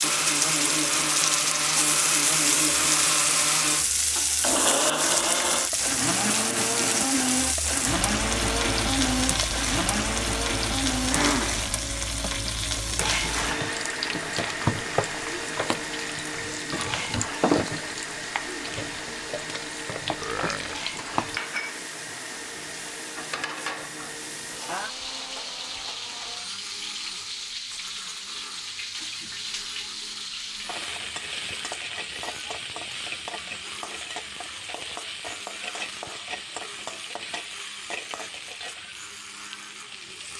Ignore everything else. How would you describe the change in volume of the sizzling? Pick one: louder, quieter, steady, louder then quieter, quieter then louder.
quieter.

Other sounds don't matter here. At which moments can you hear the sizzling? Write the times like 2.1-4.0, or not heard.
0.0-40.3.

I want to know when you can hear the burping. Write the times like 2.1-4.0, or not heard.
20.1-20.9.